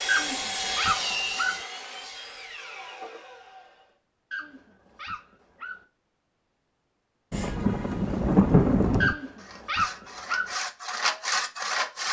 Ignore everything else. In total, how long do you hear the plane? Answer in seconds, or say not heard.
not heard.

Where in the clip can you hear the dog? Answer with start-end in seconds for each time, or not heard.
0.1-1.6, 4.3-5.8, 9.0-10.6.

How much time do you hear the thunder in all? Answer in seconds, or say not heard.
2 s.